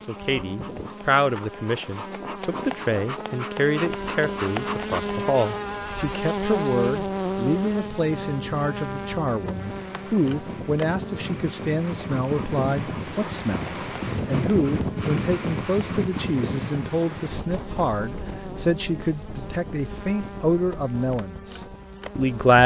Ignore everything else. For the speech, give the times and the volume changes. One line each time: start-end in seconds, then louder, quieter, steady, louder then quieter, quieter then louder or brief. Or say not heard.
0.1-22.6 steady.